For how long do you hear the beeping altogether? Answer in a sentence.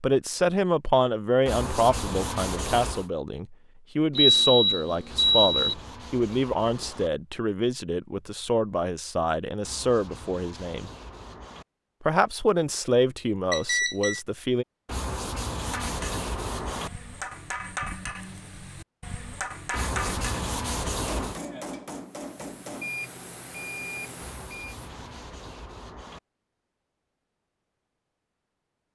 You can hear the beeping for 4 seconds altogether.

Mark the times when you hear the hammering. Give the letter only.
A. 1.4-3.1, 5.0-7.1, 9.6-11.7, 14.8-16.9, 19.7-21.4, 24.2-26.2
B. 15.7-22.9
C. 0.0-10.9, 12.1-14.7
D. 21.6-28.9
B.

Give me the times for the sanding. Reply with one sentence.
You can hear the sanding from 1.4 to 3.1 s, from 5.0 to 7.1 s, from 9.6 to 11.7 s, from 14.8 to 16.9 s, from 19.7 to 21.4 s and from 24.2 to 26.2 s.